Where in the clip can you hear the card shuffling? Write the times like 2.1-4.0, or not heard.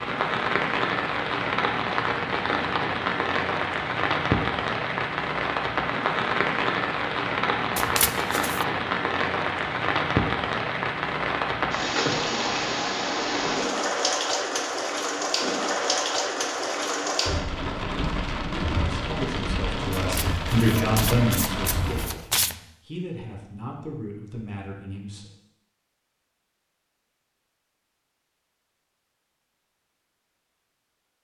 7.8-8.7, 19.9-22.6.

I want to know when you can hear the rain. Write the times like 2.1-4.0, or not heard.
0.0-22.1.